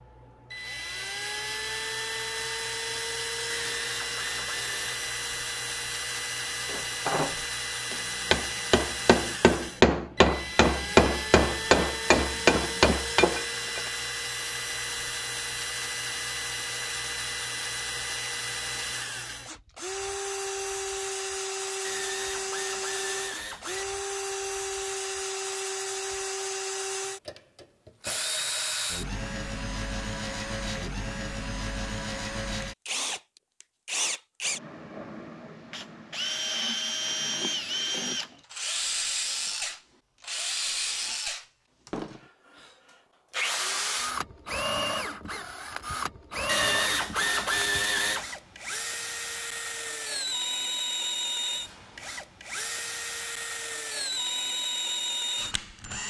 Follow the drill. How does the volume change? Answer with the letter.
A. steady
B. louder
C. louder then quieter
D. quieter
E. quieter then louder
A.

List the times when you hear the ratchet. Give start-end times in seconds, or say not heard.
3.5-5.0, 21.8-23.9, 46.5-48.4.